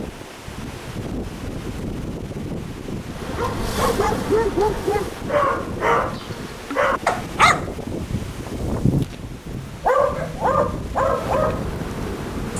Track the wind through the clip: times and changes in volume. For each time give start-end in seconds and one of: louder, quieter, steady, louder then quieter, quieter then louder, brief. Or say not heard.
0.0-12.5 steady.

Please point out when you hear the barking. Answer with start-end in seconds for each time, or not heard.
3.1-11.7.